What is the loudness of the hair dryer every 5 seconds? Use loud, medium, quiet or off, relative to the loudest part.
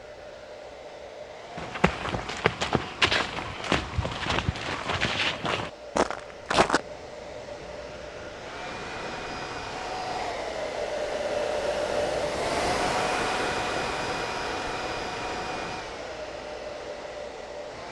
quiet, medium, loud, medium.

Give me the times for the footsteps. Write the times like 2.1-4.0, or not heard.
1.6-6.8.